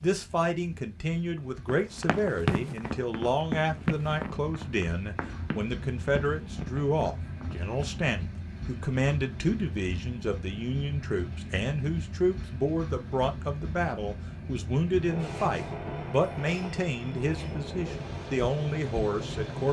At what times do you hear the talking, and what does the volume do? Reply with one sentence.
The talking can be heard from 0.0 to 19.6 s, at a steady volume.